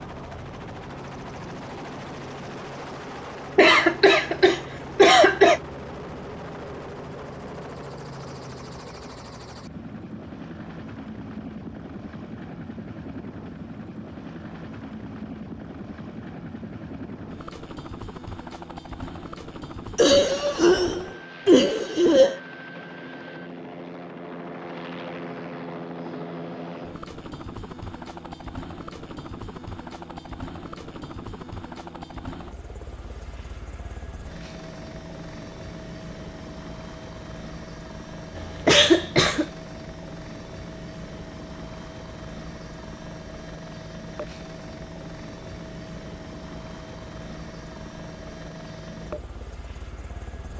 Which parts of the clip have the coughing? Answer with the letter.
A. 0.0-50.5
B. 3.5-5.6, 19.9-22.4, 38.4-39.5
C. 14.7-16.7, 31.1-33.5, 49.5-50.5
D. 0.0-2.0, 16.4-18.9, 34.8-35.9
B.